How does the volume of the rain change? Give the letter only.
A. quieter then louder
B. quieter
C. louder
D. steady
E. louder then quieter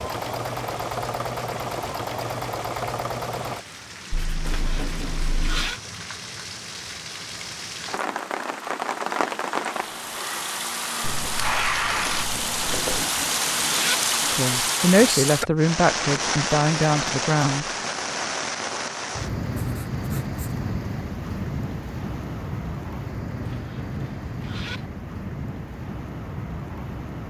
E.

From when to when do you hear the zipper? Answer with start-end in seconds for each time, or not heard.
4.4-5.8, 12.6-14.1, 23.4-24.9.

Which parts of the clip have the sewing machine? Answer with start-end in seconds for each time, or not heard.
0.0-3.6.